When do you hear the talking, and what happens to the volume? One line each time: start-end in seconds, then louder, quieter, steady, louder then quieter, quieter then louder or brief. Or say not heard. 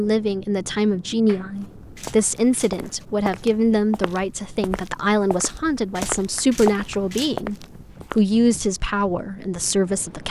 0.0-10.2 steady.